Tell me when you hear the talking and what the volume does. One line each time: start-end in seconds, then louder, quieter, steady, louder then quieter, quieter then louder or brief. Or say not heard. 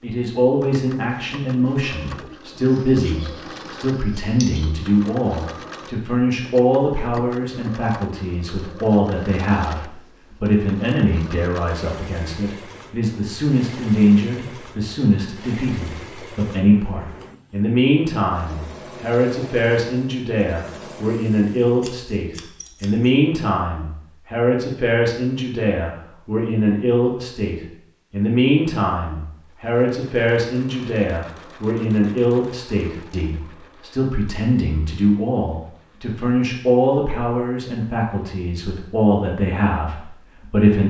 0.0-40.8 steady.